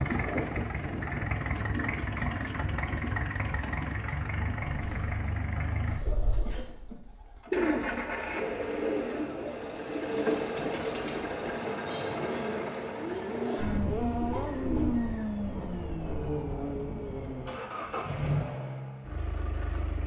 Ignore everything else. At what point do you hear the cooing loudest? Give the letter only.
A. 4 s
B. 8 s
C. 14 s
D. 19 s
B.